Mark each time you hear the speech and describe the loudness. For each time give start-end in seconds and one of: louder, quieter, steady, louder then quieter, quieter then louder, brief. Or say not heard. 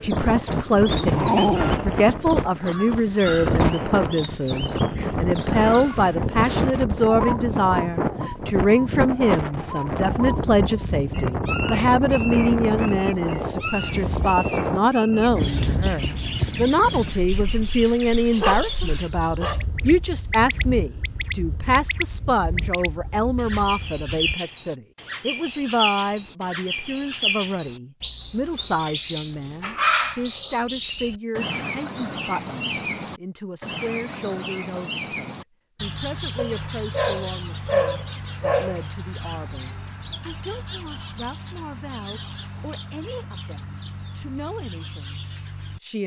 0.0-46.0 quieter.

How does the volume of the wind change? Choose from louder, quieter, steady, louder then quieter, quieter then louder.
quieter.